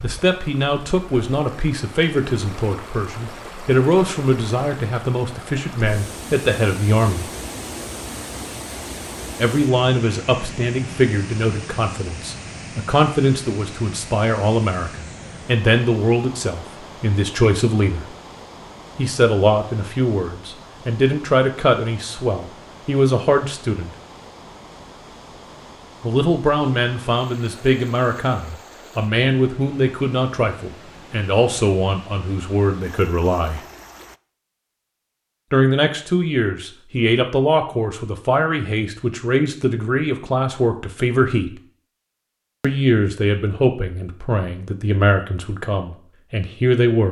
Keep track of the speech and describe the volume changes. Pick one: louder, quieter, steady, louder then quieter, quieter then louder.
steady.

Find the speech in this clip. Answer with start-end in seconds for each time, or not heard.
0.0-7.2, 9.3-18.1, 18.9-23.9, 26.0-33.6, 35.5-41.5, 42.6-47.0.